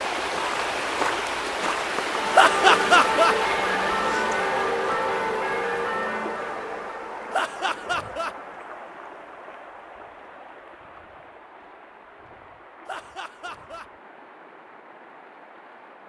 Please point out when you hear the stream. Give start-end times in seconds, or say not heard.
0.0-16.0.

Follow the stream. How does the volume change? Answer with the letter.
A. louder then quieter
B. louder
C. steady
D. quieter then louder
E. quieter
E.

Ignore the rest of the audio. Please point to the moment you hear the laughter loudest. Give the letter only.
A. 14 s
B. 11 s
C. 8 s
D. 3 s
D.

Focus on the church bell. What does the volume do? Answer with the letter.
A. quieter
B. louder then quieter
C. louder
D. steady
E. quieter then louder
A.